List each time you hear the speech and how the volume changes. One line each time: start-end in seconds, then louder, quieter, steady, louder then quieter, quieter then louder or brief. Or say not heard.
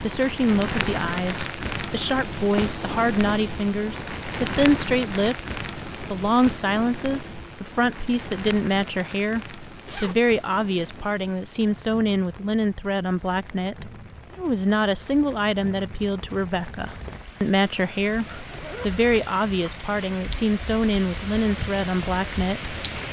0.0-22.8 steady.